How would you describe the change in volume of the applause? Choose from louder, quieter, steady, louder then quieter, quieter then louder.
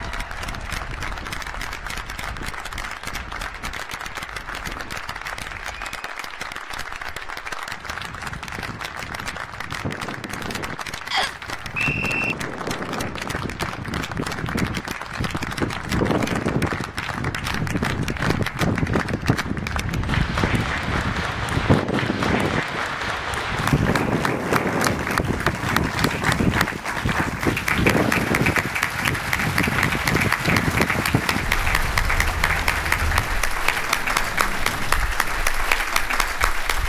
louder.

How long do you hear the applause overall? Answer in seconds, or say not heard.
37 s.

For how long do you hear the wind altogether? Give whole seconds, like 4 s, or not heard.
37 s.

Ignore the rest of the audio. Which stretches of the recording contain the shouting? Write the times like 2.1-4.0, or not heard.
not heard.